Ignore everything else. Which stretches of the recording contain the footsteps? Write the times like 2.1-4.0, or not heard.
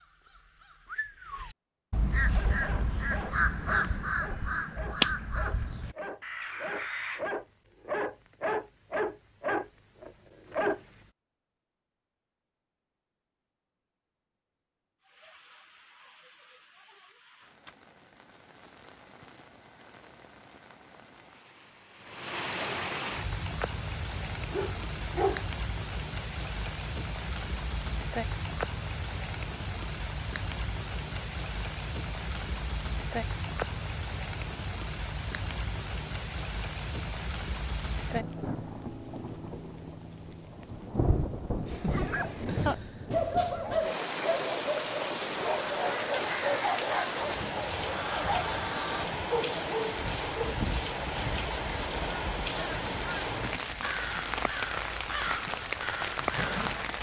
not heard.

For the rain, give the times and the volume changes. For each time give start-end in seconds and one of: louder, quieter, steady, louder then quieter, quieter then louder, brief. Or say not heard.
15.0-56.9 louder.